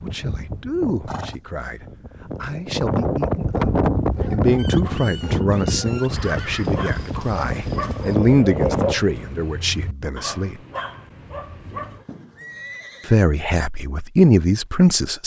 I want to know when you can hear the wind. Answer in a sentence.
The wind can be heard from 0.0 to 8.9 s.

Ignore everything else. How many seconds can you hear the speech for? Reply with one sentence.
The speech can be heard for 13 seconds in total.